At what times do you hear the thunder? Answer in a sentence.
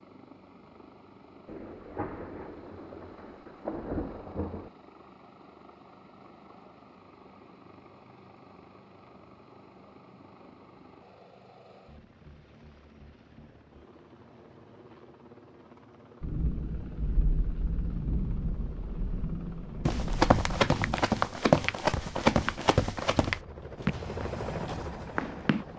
You can hear the thunder from 1.4 to 4.7 s and from 16.2 to 21.1 s.